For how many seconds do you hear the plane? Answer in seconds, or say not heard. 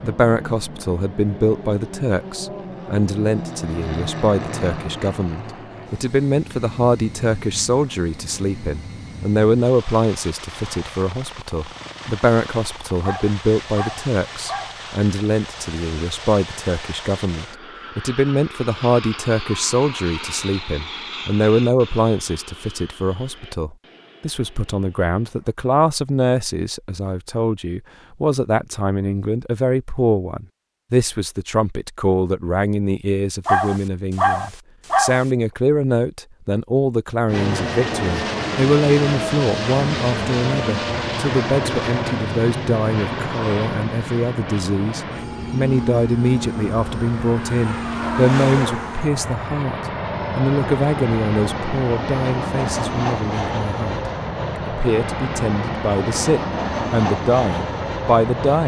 47 s.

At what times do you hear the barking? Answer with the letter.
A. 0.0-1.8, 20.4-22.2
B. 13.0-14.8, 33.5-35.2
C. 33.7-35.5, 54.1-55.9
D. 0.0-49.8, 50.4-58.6
B.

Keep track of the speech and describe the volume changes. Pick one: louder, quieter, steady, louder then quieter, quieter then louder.
steady.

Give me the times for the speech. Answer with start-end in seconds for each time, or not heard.
0.0-49.8, 50.4-58.6.